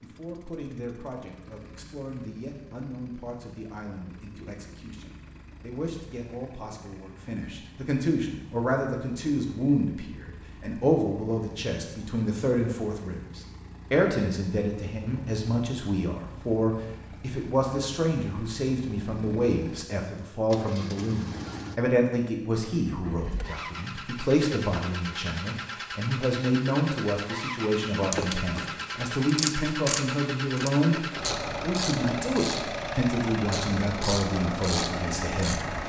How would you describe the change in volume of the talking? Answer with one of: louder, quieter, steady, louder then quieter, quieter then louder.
louder.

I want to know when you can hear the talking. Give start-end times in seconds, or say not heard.
0.0-35.8.